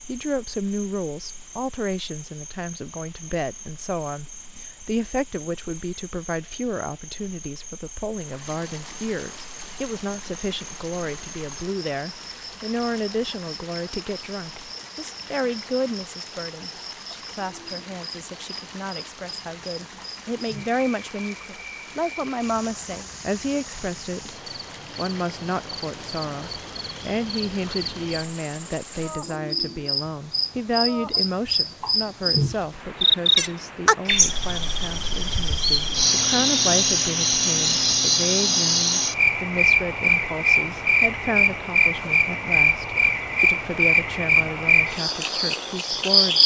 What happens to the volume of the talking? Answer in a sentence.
The loudness of the talking stays about the same.